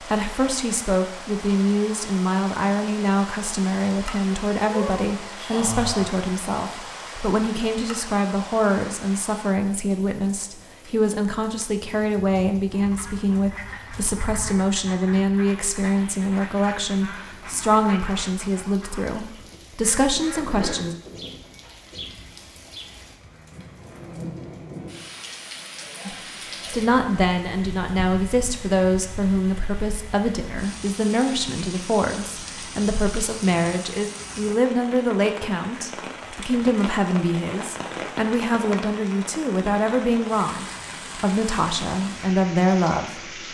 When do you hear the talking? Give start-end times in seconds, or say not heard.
0.0-20.9, 26.1-43.4.